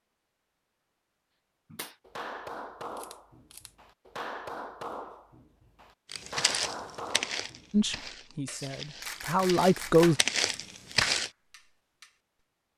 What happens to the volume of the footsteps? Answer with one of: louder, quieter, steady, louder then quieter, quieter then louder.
quieter then louder.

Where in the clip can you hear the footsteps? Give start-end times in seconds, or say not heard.
6.1-11.3.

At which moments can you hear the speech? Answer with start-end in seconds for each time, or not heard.
7.7-10.2.